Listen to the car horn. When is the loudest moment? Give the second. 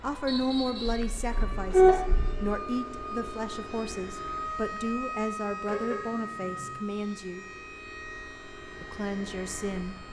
2 s.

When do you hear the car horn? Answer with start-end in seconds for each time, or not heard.
0.9-2.5, 5.7-6.8.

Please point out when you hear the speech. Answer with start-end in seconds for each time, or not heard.
0.0-7.5, 8.8-9.9.